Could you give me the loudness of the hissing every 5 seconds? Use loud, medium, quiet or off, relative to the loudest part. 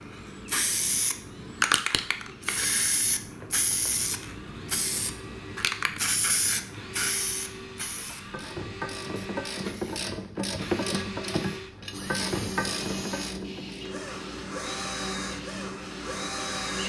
loud, loud, medium, medium.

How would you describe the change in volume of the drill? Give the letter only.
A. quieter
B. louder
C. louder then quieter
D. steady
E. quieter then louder
B.